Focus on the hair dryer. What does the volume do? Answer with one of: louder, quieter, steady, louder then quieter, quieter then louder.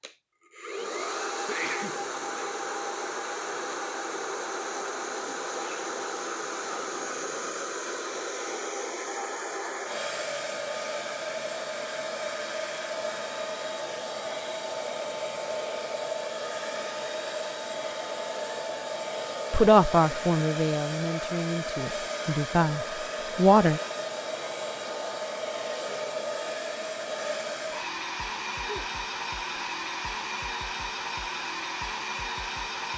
steady.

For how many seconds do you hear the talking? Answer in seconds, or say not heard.
4 s.